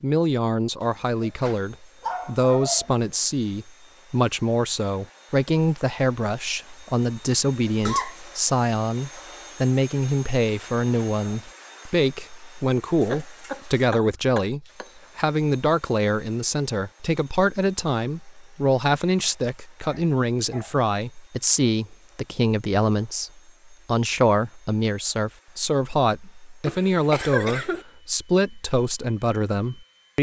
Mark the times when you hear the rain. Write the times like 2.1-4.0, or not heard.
not heard.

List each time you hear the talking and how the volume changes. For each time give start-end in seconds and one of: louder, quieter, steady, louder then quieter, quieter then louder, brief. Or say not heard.
0.0-30.1 steady.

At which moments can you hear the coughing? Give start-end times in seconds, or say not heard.
7.7-8.2, 13.1-14.9, 26.6-27.9.